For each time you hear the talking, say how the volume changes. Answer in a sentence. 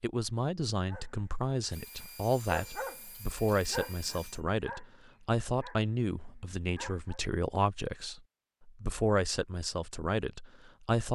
You can hear the talking from 0.0 to 11.1 s, at a steady volume.